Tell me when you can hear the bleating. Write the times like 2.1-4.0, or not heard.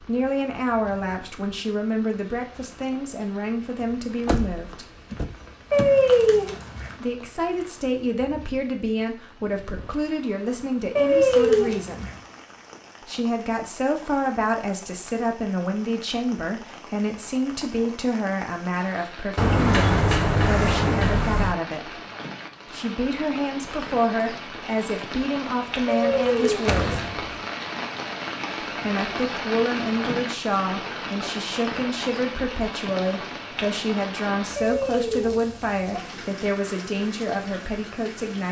not heard.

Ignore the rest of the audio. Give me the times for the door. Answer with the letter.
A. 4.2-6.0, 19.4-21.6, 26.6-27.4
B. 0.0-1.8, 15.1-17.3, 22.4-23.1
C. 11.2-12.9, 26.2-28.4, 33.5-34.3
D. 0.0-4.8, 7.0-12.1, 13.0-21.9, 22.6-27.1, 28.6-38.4
A.